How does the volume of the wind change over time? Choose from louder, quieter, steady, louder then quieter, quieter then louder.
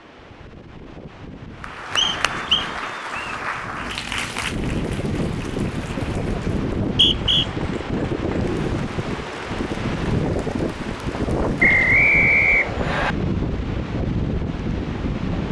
louder.